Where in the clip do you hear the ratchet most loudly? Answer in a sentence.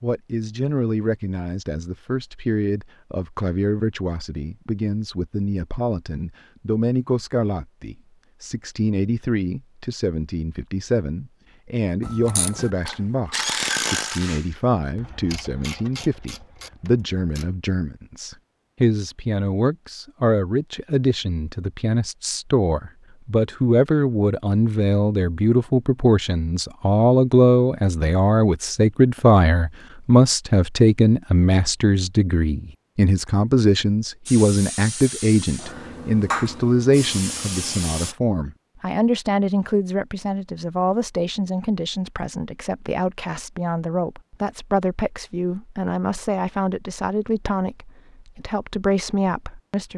The loudest moment of the ratchet is at 14 seconds.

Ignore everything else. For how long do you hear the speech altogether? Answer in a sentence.
The speech can be heard for 50 seconds in total.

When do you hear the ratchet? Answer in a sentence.
The ratchet can be heard from 12.0 to 17.5 s.